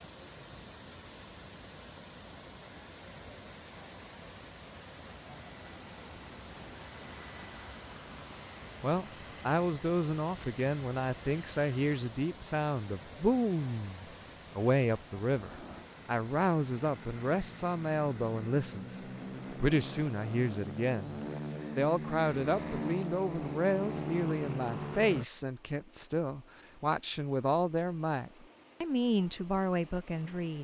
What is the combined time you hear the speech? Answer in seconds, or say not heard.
22 s.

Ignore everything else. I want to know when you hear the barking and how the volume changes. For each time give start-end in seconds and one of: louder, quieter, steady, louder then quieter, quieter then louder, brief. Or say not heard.
not heard.